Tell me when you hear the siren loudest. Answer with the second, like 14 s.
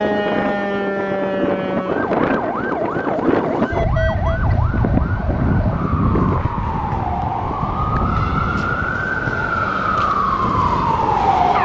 11 s.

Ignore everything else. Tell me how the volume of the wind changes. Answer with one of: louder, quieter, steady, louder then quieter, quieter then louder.
quieter.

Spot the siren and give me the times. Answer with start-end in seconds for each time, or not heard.
0.0-11.6.